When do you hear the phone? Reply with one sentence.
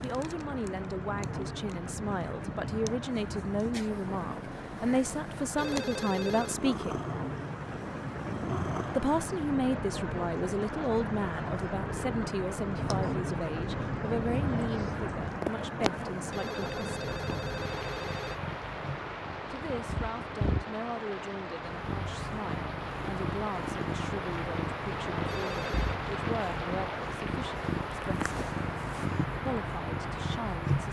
The phone can be heard from 5.5 to 6.6 s, from 16.3 to 18.4 s and from 25.2 to 26.0 s.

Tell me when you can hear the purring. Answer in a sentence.
The purring can be heard from 0.0 to 30.8 s.